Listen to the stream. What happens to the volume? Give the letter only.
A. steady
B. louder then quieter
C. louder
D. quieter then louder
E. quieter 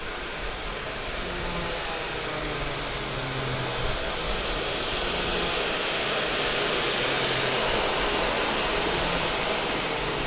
C.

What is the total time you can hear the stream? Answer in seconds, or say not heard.
10 s.